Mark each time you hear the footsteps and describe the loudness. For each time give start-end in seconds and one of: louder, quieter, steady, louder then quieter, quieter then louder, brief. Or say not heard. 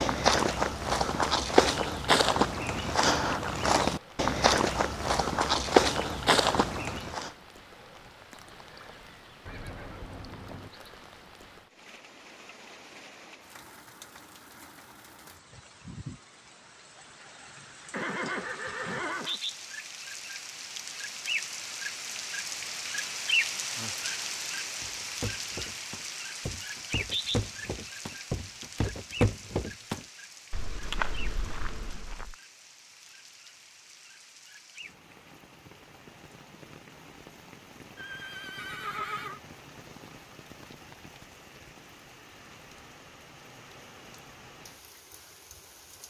0.0-7.3 steady
24.8-32.4 louder then quieter.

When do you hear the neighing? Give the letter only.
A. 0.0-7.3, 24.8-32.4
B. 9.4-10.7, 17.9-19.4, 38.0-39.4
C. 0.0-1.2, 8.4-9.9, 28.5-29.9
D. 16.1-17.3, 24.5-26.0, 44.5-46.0
B.